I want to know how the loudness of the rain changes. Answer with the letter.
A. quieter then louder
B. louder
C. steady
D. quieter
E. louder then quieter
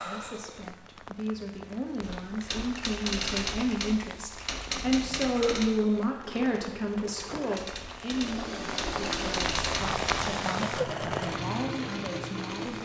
B.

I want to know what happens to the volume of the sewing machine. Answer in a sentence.
The volume of the sewing machine goes up.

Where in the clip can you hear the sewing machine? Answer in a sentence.
You can hear the sewing machine from 4.7 to 12.8 s.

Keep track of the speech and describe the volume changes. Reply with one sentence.
The loudness of the speech goes up, then down.